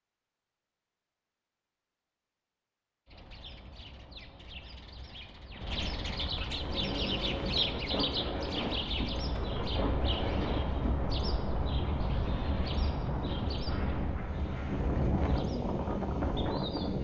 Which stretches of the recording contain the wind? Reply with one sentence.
The wind can be heard from 6.5 to 16.9 s.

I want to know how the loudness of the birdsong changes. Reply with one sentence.
The loudness of the birdsong goes up, then down.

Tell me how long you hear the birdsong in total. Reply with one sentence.
You can hear the birdsong for 14 seconds altogether.